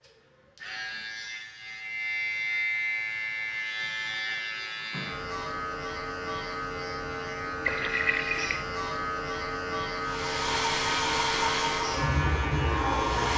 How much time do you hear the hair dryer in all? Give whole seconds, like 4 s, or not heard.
3 s.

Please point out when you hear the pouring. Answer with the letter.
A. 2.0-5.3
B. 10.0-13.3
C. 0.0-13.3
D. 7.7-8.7
D.